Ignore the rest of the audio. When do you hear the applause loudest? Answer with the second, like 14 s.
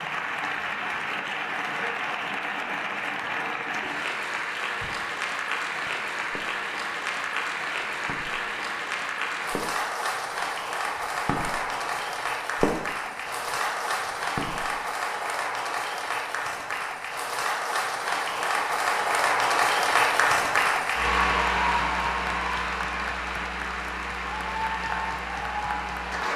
20 s.